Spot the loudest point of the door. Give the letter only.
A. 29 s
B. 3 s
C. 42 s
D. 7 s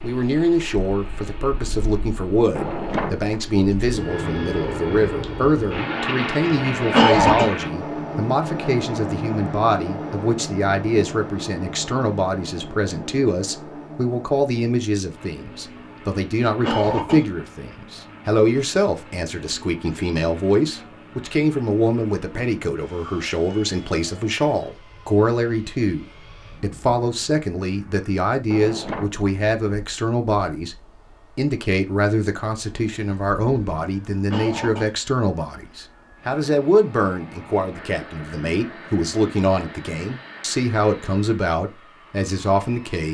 B.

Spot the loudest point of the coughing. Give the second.
7 s.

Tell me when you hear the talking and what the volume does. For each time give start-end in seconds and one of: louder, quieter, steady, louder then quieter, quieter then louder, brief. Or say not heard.
0.0-30.8 steady
31.4-43.0 steady.